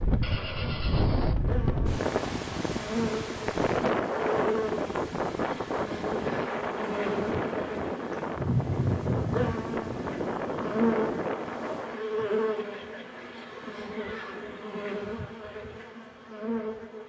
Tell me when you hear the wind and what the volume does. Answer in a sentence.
The wind can be heard from 0.0 to 12.1 s, at a steady volume.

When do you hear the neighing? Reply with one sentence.
You can hear the neighing from 0.2 to 1.4 s and from 12.6 to 14.6 s.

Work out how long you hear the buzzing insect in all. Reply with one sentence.
You can hear the buzzing insect for 17 seconds altogether.